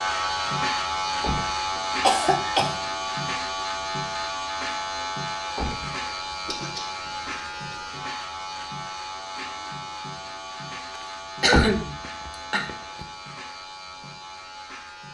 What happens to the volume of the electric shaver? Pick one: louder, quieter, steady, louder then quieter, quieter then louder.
quieter.